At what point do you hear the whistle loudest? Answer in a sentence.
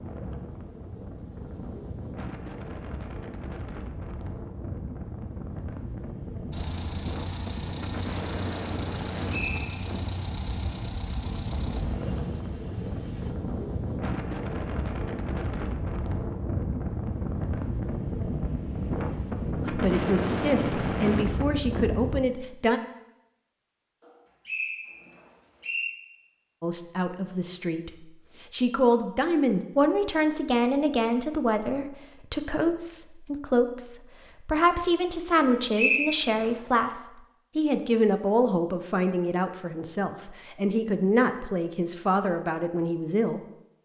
The volume of the whistle peaks at 36 seconds.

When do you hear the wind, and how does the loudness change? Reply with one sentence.
You can hear the wind from 0.0 to 22.2 s, getting louder.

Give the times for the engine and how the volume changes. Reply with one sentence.
You can hear the engine from 6.5 to 13.3 s, at a steady volume.